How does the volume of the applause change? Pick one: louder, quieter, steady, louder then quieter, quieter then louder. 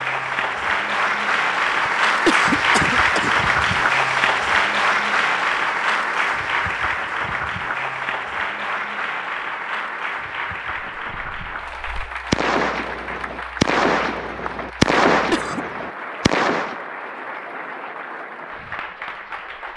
quieter.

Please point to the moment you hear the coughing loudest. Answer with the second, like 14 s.
2 s.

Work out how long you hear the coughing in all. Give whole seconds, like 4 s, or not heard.
3 s.